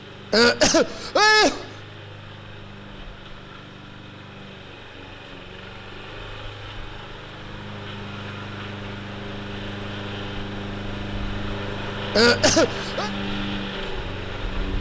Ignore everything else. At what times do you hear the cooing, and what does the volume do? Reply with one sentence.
You can't hear the cooing here.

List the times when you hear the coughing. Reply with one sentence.
The coughing can be heard from 0.3 to 1.7 s and from 12.1 to 13.1 s.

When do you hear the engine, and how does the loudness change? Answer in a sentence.
You can hear the engine from 0.0 to 14.7 s, getting louder.